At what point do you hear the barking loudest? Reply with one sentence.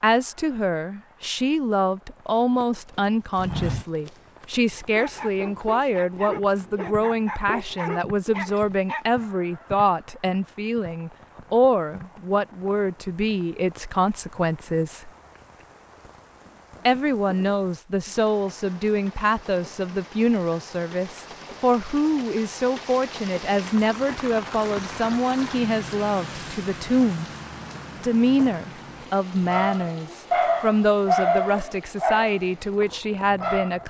The loudest moment of the barking is at 31 seconds.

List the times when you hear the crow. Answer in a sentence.
You can't hear the crow here.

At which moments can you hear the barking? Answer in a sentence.
The barking can be heard from 4.8 to 9.1 s and from 29.4 to 33.8 s.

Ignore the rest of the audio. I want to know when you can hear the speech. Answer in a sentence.
The speech can be heard from 0.0 to 15.1 s, from 16.9 to 27.2 s and from 27.9 to 33.8 s.